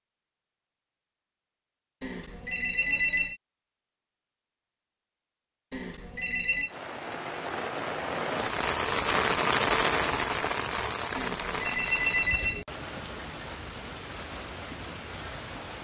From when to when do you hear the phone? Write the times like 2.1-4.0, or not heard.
2.0-3.4, 5.7-6.7, 11.2-12.7.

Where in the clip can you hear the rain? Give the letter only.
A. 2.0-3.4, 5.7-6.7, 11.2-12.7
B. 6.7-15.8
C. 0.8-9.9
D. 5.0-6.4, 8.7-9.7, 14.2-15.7
B.